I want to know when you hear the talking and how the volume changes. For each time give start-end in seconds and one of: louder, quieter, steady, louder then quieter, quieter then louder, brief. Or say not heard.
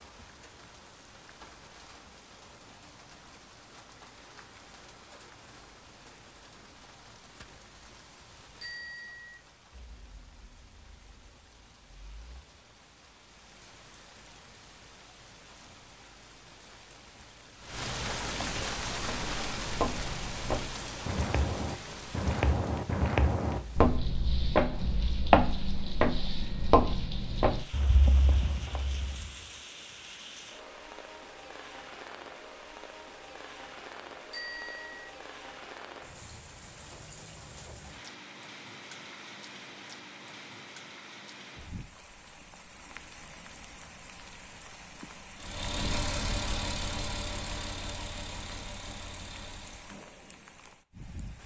not heard.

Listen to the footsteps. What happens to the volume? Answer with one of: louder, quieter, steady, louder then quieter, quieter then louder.
louder then quieter.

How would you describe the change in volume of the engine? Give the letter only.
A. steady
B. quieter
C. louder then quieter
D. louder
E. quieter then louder
B.